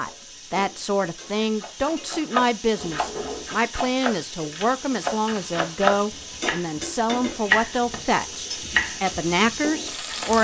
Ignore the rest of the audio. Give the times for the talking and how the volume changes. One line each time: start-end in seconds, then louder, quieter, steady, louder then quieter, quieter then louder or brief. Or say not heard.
0.0-10.3 steady.